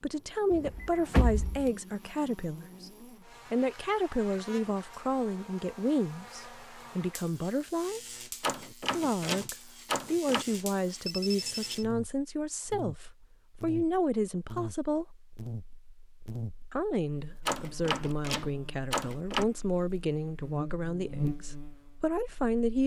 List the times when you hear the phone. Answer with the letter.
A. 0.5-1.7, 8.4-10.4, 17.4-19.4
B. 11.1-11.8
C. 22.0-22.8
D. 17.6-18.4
B.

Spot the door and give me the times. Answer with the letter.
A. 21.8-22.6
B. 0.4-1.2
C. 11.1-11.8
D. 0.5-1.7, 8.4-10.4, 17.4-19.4
D.